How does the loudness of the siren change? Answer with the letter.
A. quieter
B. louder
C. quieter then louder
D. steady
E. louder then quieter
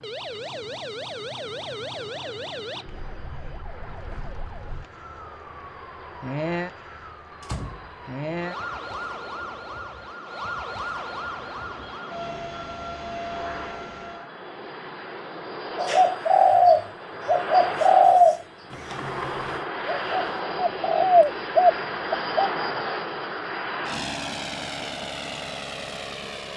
C.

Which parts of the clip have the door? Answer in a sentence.
You can hear the door from 7.4 to 8.3 s and from 18.7 to 19.6 s.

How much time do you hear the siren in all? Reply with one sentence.
The siren can be heard for 14 seconds in total.